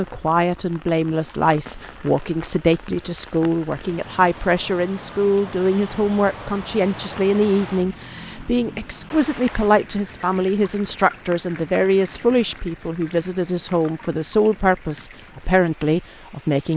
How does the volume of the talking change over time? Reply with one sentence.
The volume of the talking stays about the same.